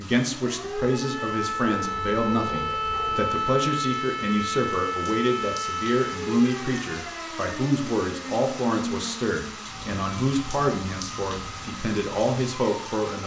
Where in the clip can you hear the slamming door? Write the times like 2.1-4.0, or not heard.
not heard.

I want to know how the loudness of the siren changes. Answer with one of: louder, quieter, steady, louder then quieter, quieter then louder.
quieter.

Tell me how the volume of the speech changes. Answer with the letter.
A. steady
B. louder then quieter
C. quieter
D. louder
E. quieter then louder
A.